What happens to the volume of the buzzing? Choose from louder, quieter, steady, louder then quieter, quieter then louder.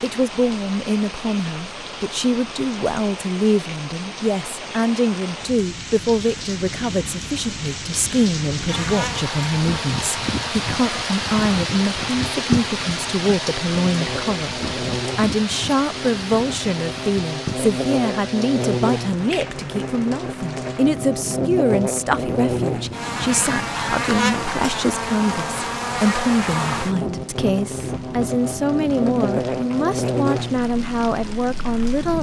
louder.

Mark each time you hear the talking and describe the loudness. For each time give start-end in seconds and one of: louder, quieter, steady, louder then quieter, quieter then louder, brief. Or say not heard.
0.0-32.1 steady.